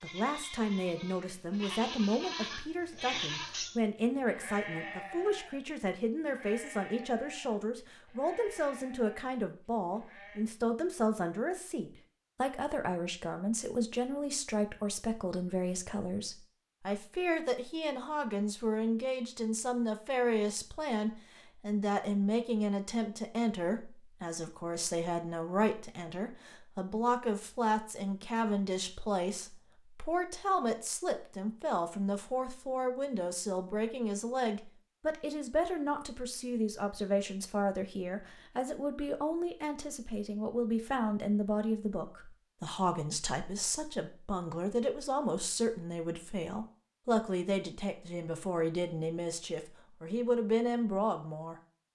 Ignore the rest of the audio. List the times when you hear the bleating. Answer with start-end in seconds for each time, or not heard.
0.0-10.4.